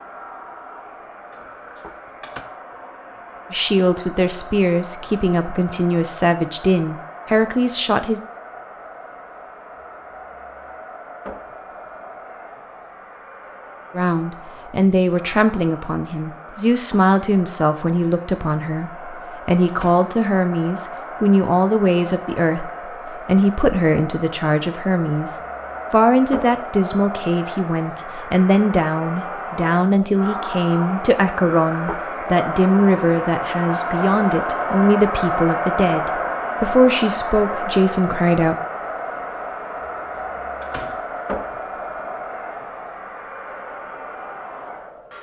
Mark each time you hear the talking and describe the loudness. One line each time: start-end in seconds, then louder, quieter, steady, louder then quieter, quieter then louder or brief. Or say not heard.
3.5-8.2 steady
13.9-38.5 steady.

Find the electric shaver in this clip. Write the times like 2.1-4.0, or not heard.
not heard.